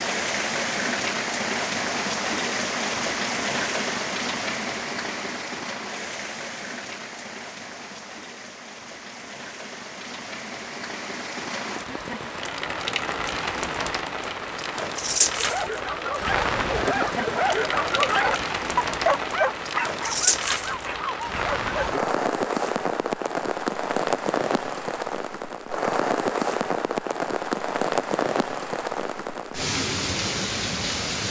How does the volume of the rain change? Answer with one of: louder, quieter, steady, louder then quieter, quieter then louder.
quieter then louder.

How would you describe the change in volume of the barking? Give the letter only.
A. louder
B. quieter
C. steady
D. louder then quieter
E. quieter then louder
D.